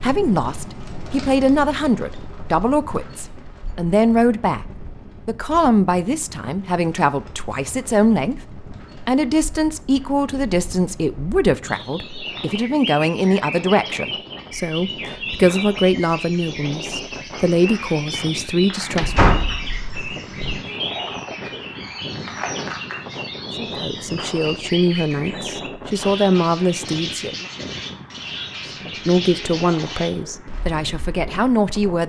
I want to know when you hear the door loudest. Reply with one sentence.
The volume of the door peaks at 19 seconds.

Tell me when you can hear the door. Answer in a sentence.
You can hear the door from 18.9 to 20.6 s.